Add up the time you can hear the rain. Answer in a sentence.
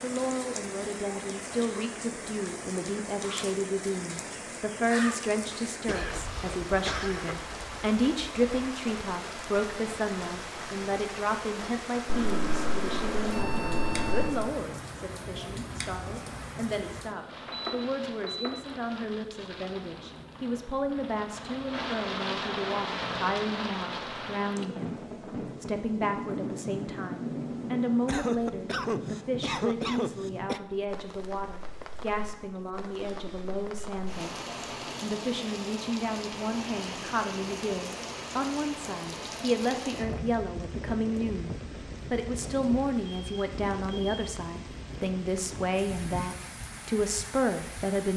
The rain can be heard for 48 seconds in total.